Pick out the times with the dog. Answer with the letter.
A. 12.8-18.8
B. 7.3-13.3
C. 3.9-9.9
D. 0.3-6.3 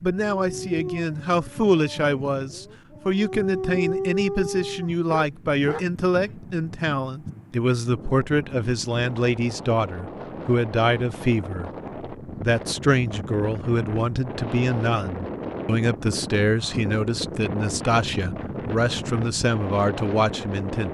D.